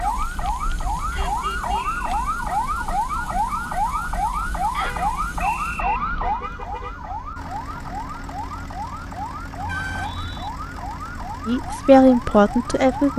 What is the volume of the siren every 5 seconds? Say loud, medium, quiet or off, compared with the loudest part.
loud, loud, medium.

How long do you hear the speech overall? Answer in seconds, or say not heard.
2 s.